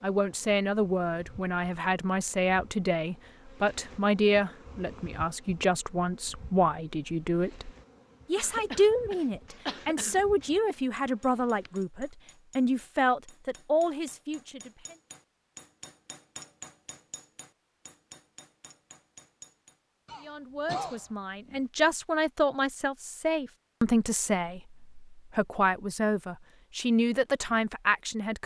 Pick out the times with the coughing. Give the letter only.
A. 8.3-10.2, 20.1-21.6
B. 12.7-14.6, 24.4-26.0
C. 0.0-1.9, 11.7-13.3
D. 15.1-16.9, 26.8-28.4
A.